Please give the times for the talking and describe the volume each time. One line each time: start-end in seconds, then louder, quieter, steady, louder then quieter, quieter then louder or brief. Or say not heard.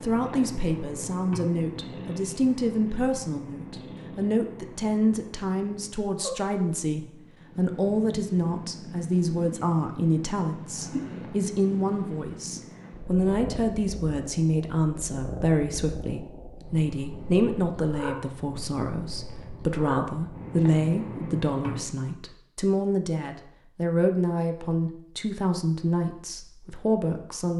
0.0-27.5 steady.